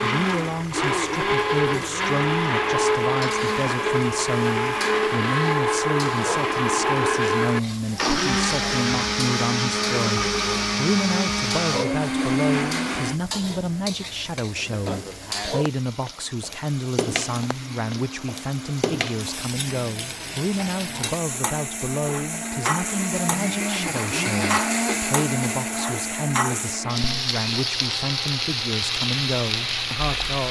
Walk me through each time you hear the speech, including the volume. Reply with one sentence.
You can hear the speech from 0.0 to 30.4 s, at a steady volume.